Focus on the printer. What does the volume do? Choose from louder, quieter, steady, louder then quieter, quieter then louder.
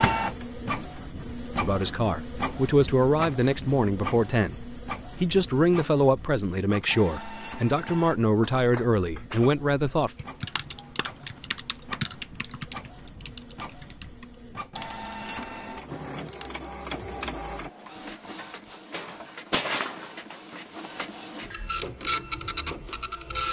quieter then louder.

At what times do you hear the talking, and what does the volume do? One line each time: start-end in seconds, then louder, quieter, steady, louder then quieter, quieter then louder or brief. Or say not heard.
1.6-10.2 steady.